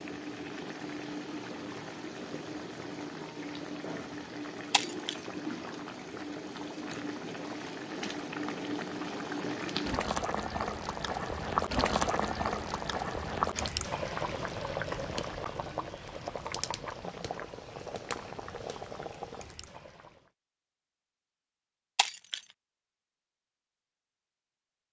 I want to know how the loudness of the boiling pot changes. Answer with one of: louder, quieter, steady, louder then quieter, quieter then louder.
louder then quieter.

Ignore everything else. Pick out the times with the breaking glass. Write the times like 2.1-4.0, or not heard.
4.7-5.2, 21.9-22.4.